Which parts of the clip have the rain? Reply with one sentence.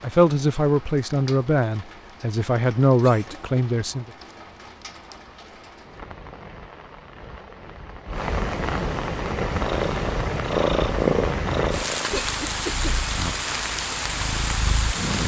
You can hear the rain from 0.0 to 15.2 s.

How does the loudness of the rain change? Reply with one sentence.
The loudness of the rain goes up.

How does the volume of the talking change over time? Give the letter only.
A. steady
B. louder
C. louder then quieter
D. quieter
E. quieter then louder
E.